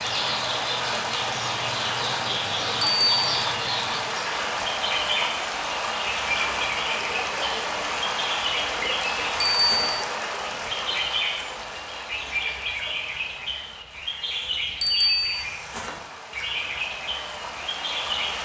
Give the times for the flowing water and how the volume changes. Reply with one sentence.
The flowing water can be heard from 0.0 to 18.4 s, getting quieter.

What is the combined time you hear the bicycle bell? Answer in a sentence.
You can hear the bicycle bell for 2 seconds altogether.